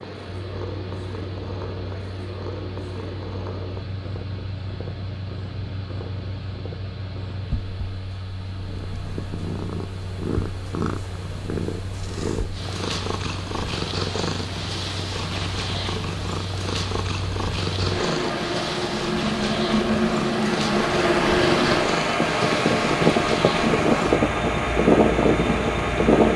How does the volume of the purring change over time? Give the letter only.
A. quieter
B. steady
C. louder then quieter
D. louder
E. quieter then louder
D.